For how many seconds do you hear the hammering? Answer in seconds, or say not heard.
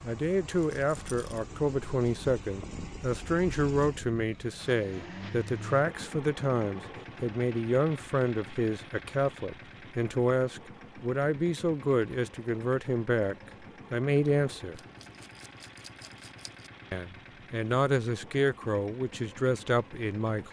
not heard.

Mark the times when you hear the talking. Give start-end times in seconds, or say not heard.
0.0-14.8, 16.9-20.4.